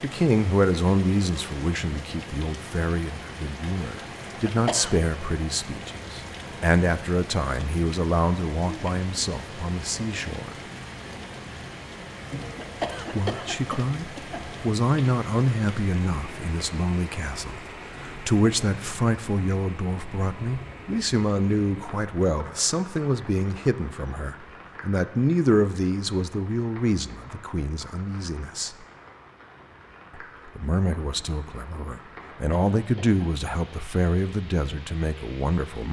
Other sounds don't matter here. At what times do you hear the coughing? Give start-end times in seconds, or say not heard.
4.4-5.0, 12.6-14.4, 32.2-33.5.